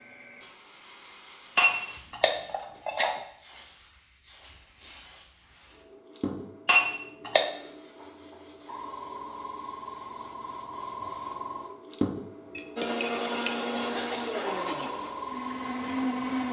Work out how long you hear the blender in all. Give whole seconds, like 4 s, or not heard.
4 s.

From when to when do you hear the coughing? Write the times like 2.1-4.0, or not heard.
13.7-14.6.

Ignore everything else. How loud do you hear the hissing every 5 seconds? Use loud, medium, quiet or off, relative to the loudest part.
quiet, medium, loud, loud.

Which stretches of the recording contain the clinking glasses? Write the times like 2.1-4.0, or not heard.
1.6-3.1, 6.7-7.5, 12.5-13.6.